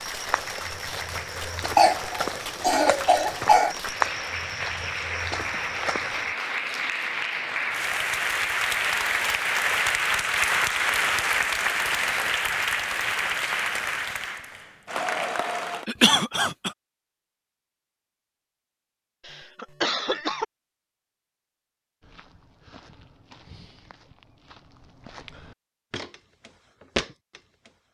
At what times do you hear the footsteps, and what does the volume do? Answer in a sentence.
You can hear the footsteps from 0.0 to 6.3 s, getting louder then quieter; and from 22.0 to 27.7 s, getting louder.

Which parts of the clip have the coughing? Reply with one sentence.
You can hear the coughing from 1.8 to 3.8 s, from 15.8 to 16.7 s and from 19.2 to 20.4 s.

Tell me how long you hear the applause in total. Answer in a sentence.
The applause can be heard for 16 seconds in total.